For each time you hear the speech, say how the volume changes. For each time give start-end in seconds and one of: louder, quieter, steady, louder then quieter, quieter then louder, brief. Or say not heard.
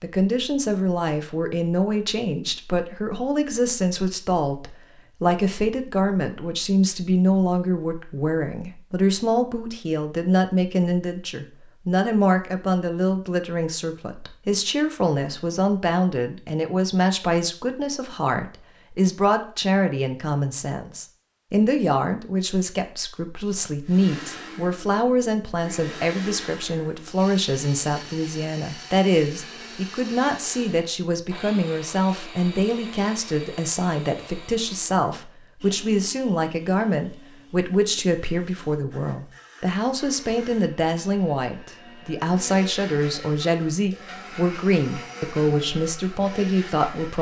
0.0-47.1 steady.